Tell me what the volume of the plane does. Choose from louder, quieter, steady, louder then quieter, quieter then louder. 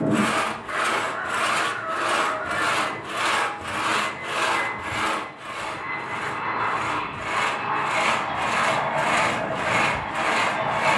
louder.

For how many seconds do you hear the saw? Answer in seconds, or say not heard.
11 s.